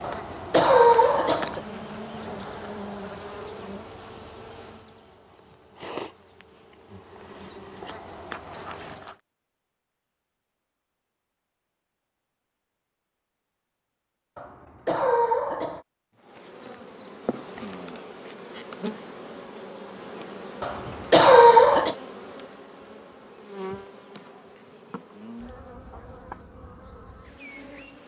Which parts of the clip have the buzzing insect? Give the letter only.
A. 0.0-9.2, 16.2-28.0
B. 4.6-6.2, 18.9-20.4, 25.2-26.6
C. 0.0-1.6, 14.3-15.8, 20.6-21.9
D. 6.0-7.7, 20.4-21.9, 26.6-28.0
A.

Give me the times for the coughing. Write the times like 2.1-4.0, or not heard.
0.0-1.6, 14.3-15.8, 20.6-21.9.